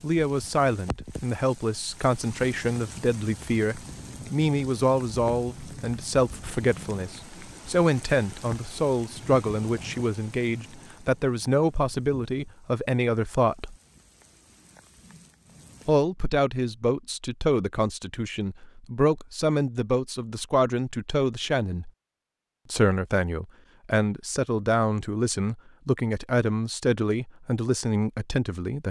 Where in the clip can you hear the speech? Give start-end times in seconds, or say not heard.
0.0-13.8, 15.8-21.9, 22.7-28.8.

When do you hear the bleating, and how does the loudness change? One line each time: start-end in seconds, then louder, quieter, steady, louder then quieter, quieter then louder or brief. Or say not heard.
not heard.